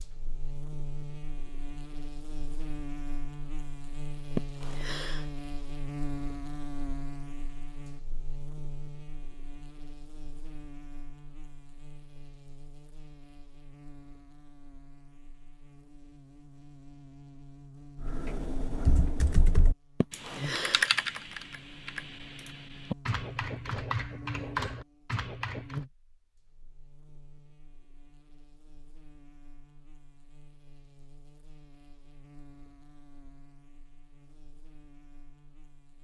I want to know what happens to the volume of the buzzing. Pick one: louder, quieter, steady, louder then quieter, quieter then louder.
quieter.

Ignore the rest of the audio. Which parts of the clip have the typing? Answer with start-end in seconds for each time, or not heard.
18.0-25.9.